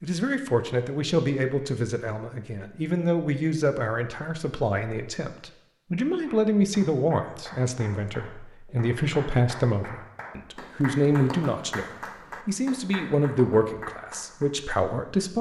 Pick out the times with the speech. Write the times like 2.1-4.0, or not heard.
0.0-15.3.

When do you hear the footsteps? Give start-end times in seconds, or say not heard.
not heard.